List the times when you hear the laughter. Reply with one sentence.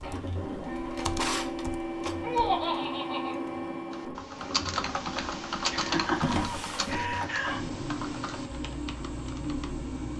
You can hear the laughter from 2.2 to 3.4 s and from 5.7 to 7.6 s.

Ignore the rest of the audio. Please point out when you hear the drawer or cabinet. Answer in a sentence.
The drawer or cabinet can be heard from 0.9 to 2.3 s and from 6.2 to 7.1 s.